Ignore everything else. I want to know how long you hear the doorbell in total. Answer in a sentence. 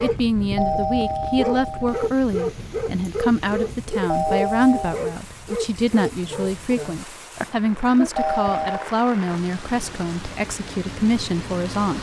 You can hear the doorbell for 3 seconds altogether.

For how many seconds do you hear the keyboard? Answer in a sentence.
You can't hear the keyboard here.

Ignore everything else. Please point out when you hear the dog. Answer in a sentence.
You can hear the dog from 0.0 to 8.6 s.